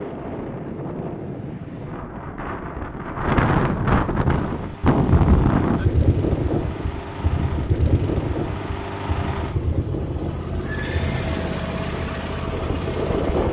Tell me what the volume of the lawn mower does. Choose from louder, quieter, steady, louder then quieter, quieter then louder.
louder.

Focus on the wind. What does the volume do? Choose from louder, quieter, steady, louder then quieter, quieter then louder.
louder then quieter.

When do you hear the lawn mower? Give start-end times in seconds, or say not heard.
4.2-13.4.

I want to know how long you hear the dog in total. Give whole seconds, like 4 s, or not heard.
not heard.